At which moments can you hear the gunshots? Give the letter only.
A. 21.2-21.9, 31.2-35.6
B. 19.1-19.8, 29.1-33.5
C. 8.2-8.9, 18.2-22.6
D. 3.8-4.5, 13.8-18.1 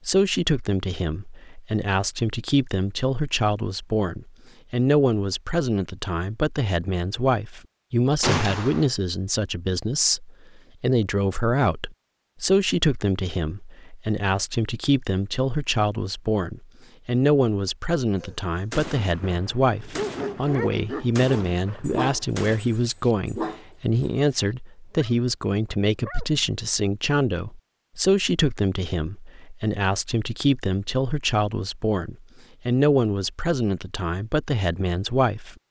C.